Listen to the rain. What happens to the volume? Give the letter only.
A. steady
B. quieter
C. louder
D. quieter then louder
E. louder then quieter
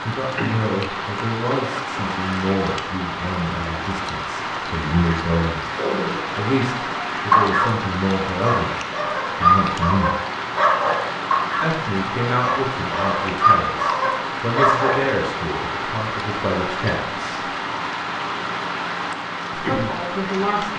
A.